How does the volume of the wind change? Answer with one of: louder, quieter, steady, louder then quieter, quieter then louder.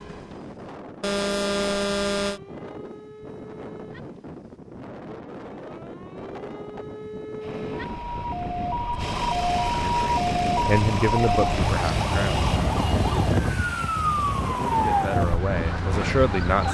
louder.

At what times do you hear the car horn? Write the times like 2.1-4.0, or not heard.
1.0-2.4.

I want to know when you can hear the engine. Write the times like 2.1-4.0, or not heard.
7.4-12.6.